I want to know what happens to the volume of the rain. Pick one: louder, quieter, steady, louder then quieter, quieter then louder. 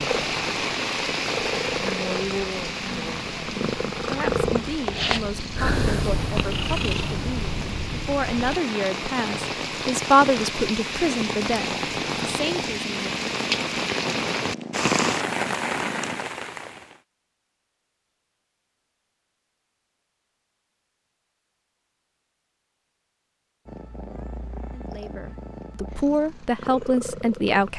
quieter then louder.